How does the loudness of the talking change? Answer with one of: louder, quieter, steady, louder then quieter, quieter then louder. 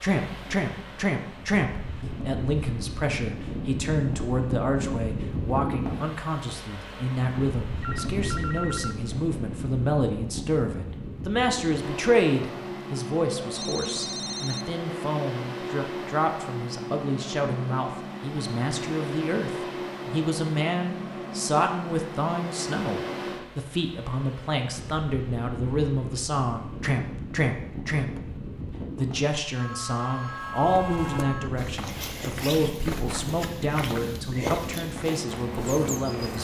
steady.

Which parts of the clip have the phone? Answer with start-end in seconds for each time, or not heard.
7.8-8.9, 13.6-14.8, 29.6-31.5.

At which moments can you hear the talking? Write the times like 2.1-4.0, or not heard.
0.0-36.3.